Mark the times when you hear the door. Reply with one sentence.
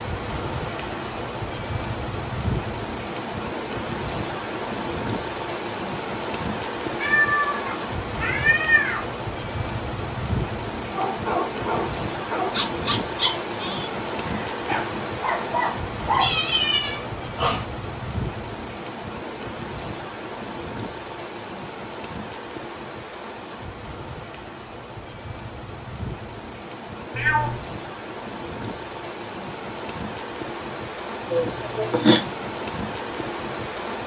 The door can't be heard in this clip.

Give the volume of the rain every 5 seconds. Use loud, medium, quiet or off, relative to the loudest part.
loud, loud, loud, loud, medium, medium, loud.